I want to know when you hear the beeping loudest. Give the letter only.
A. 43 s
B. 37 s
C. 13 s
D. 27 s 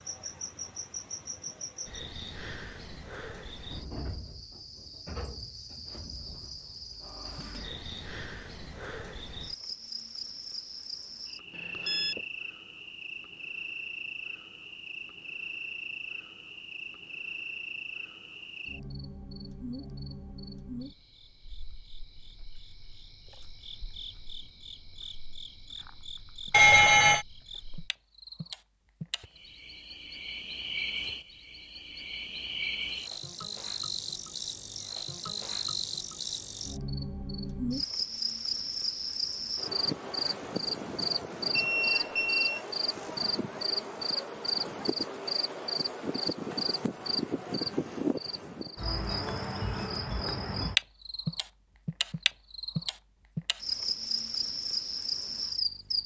D.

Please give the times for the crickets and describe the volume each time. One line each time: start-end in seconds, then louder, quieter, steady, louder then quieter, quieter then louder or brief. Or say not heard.
0.0-56.0 louder.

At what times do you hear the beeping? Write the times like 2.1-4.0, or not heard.
11.6-12.2, 26.5-27.2, 41.5-42.6.